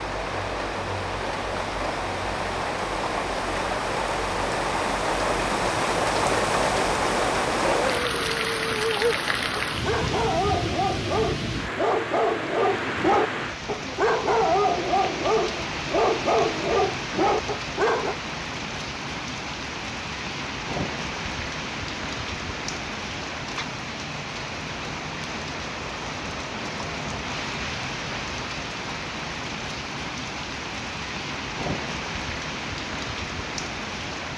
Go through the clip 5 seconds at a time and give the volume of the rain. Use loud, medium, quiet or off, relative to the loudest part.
loud, loud, medium, medium, medium, medium, medium.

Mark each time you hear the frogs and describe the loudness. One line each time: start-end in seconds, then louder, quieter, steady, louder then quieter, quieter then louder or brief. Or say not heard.
not heard.